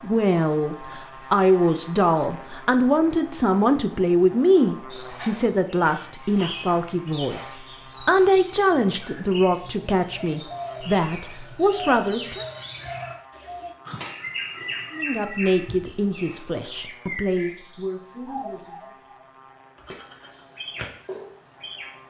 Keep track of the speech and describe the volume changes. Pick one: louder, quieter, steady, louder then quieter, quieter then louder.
quieter.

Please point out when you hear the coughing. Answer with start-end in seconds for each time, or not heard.
not heard.